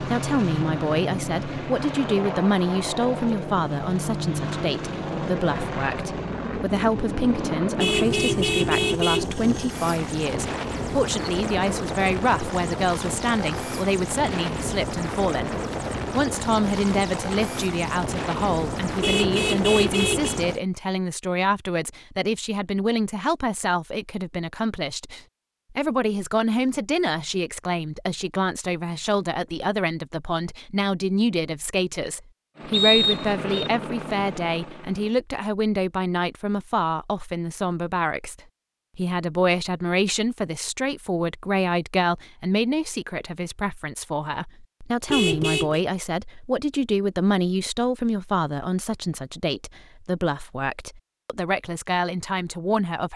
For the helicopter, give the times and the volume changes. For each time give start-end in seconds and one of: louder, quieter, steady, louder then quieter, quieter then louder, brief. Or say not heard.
0.0-20.6 steady
32.5-35.1 brief.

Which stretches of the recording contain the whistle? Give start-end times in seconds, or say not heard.
32.7-33.7.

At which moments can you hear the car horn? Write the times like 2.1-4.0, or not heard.
7.8-9.2, 19.0-20.4, 45.0-45.8.